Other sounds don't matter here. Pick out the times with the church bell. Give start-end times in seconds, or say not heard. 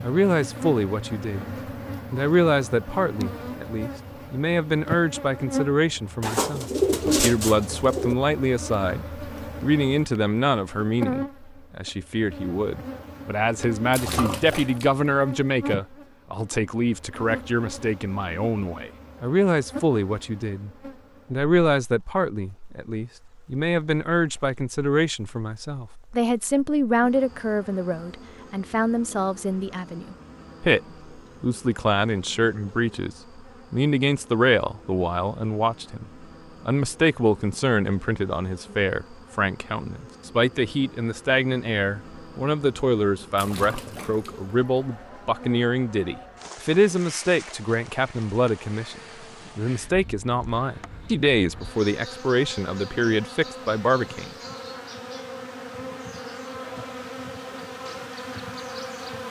not heard.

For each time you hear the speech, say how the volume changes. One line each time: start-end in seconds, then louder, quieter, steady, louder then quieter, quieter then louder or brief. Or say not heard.
0.0-20.7 steady
21.3-54.3 steady.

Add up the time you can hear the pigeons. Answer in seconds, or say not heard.
2 s.